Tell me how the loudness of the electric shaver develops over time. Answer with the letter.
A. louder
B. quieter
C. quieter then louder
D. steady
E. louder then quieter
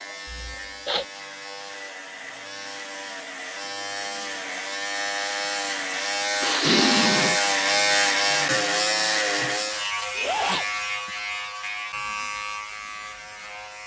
E.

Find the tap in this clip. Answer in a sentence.
The tap can't be heard in this clip.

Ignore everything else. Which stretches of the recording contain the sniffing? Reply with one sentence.
You can hear the sniffing from 0.2 to 1.1 s, from 6.4 to 7.4 s and from 10.2 to 10.7 s.